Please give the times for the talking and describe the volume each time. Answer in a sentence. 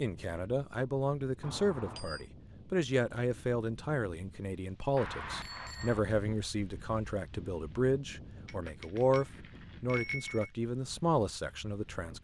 The talking can be heard from 0.0 to 12.1 s, at a steady volume.